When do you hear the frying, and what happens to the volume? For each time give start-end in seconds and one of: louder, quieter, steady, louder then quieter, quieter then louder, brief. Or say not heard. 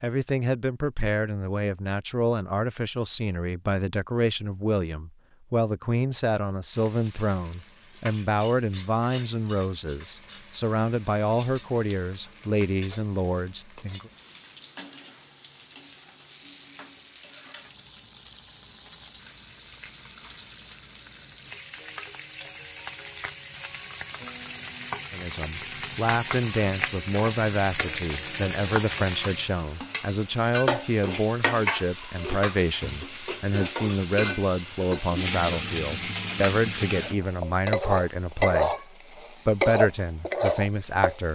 6.7-41.2 louder.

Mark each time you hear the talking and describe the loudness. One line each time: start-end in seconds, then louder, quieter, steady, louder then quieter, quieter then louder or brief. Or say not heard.
0.0-14.1 steady
25.1-41.3 steady.